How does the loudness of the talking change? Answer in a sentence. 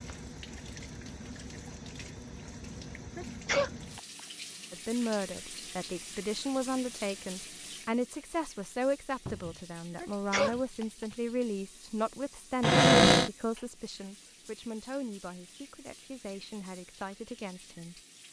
The volume of the talking goes down.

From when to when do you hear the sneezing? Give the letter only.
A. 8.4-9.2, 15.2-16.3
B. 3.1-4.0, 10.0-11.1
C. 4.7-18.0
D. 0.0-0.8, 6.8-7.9
B.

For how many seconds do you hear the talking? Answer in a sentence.
You can hear the talking for 13 seconds altogether.